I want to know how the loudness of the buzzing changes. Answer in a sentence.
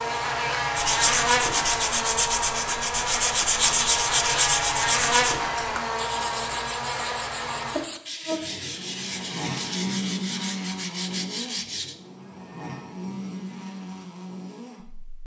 The loudness of the buzzing goes down.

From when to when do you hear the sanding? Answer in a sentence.
You can hear the sanding from 0.8 to 11.9 s.